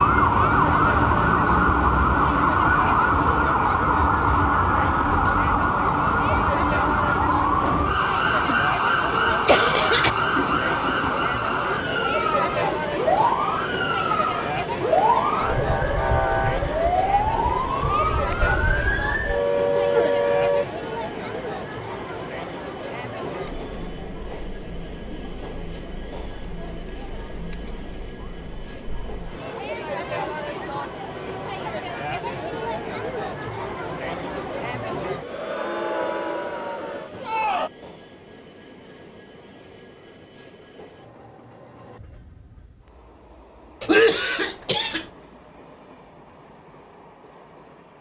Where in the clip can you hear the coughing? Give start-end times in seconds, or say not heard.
9.4-10.1, 43.8-45.0.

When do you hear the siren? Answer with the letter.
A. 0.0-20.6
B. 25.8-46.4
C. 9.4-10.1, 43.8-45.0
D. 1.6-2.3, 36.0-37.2
A.